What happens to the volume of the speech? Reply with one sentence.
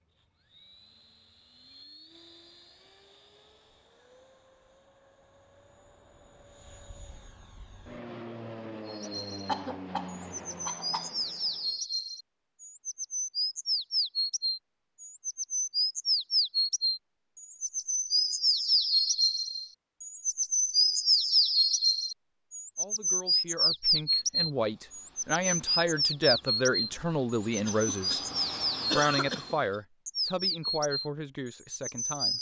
The volume of the speech goes up, then down.